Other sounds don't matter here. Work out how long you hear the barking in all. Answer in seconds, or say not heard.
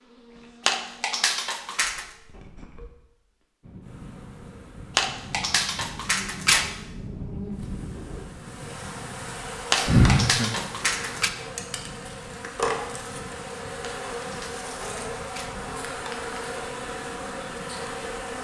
6 s.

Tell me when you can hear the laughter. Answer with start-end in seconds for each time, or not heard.
9.8-11.2.